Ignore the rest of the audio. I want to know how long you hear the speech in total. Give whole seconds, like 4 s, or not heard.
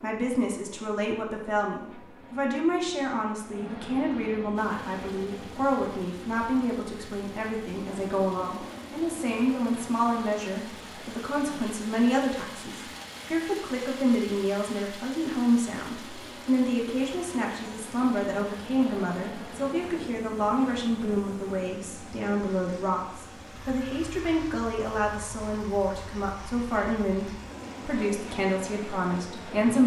30 s.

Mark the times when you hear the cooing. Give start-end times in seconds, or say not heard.
not heard.